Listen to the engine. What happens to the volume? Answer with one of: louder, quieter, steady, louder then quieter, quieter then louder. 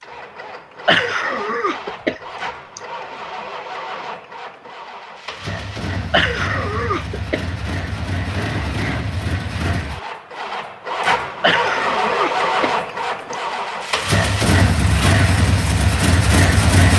louder.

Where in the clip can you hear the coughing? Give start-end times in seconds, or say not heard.
0.8-2.8, 6.1-7.5, 11.4-13.4.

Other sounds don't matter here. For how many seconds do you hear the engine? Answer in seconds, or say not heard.
17 s.